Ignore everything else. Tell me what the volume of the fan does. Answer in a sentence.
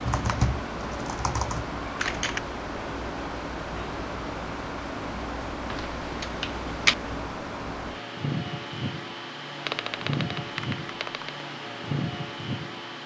The volume of the fan stays about the same.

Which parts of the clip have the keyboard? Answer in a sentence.
You can hear the keyboard from 0.1 to 2.4 s, from 5.7 to 7.0 s and from 9.7 to 11.4 s.